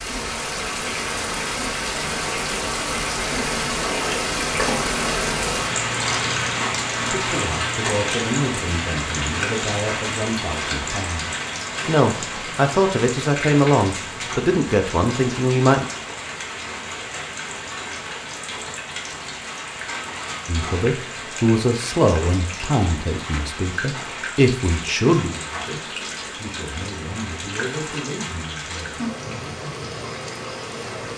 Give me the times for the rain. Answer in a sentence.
The rain can be heard from 0.0 to 31.1 s.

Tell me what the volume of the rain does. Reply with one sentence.
The volume of the rain goes down.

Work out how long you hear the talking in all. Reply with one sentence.
You can hear the talking for 18 seconds altogether.